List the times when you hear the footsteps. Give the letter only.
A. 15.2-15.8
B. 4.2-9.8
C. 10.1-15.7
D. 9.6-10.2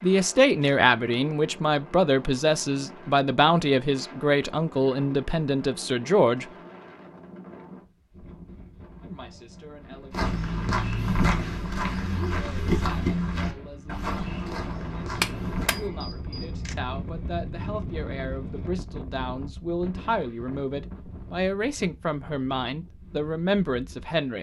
C.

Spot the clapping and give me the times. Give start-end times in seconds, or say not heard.
15.2-15.8.